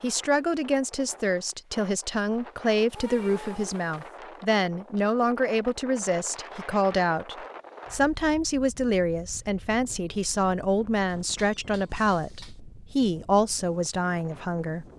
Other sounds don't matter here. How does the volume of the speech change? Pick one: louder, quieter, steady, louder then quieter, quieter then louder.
steady.